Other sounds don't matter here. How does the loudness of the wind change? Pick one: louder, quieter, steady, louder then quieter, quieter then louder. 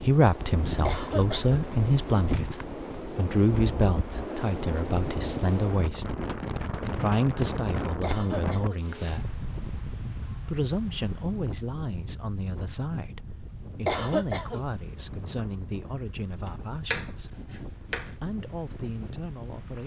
quieter.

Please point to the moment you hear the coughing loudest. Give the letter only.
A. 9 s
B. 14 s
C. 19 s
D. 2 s
B.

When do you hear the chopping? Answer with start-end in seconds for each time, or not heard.
16.4-18.1.